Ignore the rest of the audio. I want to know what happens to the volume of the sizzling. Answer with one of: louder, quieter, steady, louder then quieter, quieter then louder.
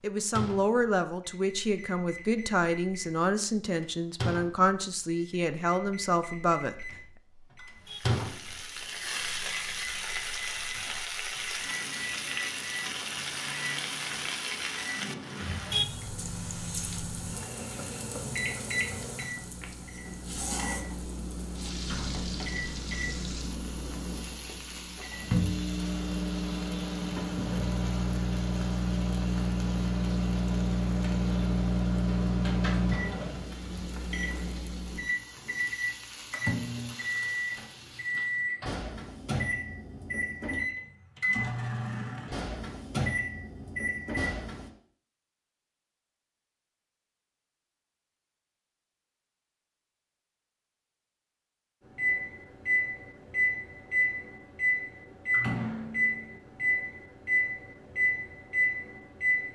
quieter.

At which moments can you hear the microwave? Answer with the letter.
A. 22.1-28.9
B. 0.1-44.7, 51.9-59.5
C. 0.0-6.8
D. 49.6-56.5
B.